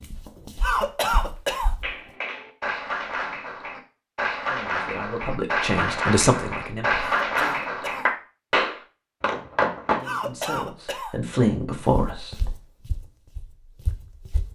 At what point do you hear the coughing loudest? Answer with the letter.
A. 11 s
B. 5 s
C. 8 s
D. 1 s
D.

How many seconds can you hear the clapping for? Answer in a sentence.
The clapping can be heard for 8 seconds in total.